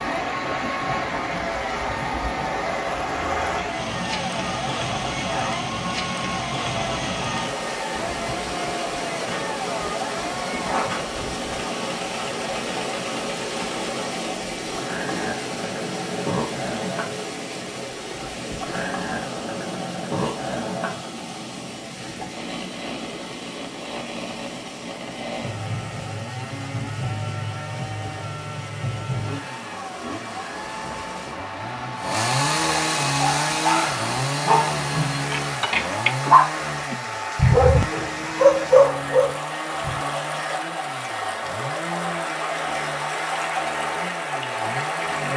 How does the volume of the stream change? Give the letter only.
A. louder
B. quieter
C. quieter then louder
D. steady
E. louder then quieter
C.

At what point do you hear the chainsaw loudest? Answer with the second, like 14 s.
33 s.